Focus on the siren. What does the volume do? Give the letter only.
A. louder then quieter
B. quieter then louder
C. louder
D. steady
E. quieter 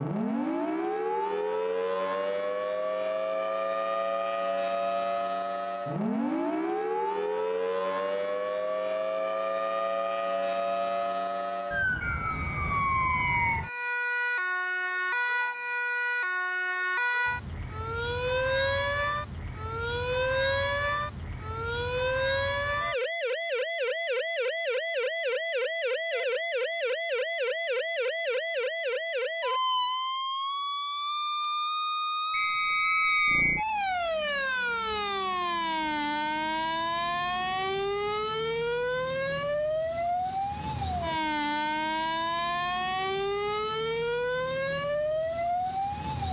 D.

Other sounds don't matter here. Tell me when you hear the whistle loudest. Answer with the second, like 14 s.
33 s.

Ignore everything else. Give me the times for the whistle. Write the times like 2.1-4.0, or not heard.
12.0-13.6, 32.3-33.6.